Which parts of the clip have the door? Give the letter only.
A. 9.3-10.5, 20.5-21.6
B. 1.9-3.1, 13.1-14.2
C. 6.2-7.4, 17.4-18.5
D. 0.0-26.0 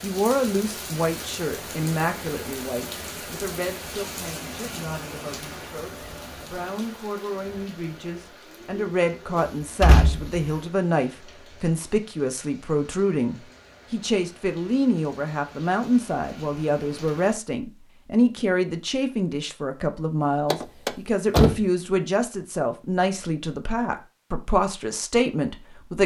A.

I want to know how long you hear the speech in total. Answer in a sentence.
You can hear the speech for 26 seconds altogether.